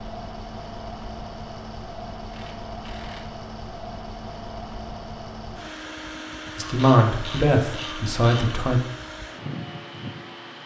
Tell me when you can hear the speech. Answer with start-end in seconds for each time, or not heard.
6.5-8.8.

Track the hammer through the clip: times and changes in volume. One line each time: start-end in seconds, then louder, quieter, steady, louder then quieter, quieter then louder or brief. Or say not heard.
not heard.